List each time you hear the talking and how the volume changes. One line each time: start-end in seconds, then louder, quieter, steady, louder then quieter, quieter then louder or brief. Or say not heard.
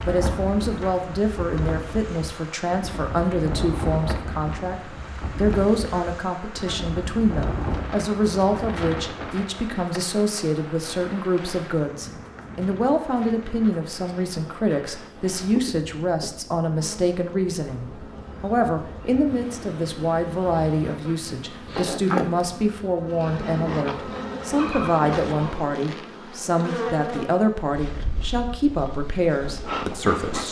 0.0-30.4 steady.